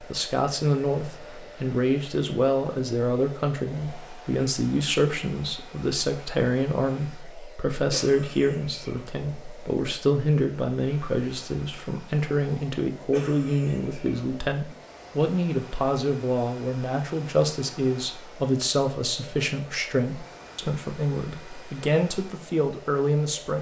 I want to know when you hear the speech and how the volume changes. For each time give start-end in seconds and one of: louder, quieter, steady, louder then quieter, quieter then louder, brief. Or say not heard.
0.0-23.5 steady.